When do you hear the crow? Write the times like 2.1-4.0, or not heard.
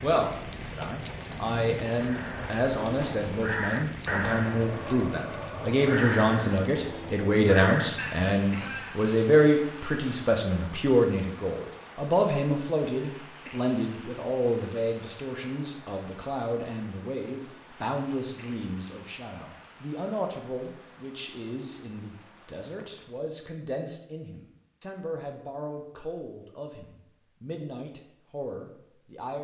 2.0-9.0.